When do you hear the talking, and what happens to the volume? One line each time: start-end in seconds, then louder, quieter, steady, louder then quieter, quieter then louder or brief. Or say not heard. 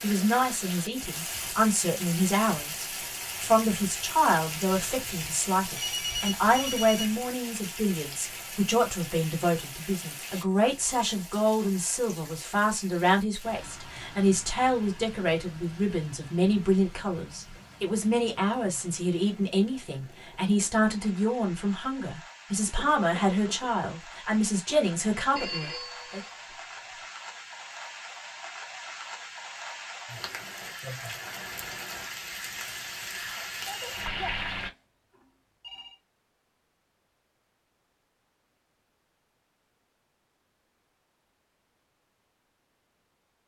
0.0-26.2 steady.